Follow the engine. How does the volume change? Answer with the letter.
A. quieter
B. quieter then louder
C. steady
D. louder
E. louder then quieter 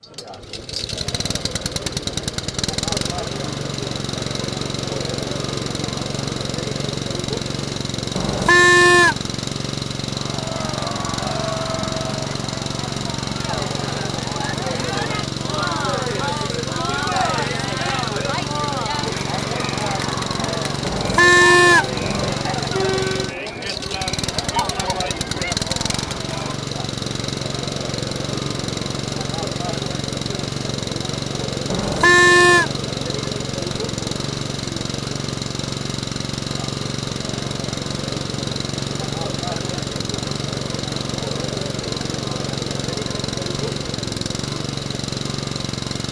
C.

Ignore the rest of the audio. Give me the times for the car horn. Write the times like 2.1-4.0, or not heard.
8.2-9.2, 20.8-22.4, 31.7-32.7.